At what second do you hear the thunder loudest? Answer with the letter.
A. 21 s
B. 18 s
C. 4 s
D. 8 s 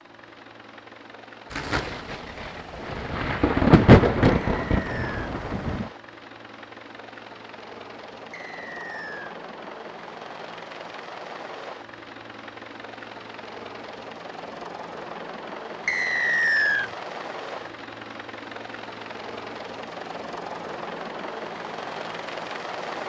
C.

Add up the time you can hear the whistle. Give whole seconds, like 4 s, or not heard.
3 s.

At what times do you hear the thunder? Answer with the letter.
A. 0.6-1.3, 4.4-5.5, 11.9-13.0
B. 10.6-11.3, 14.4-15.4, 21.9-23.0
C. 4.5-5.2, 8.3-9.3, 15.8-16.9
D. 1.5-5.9
D.